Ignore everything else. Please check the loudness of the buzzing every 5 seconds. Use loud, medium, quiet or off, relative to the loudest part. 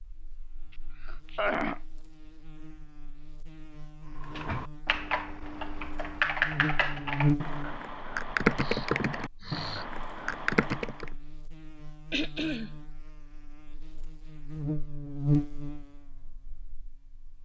quiet, loud, medium, loud.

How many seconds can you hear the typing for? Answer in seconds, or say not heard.
7 s.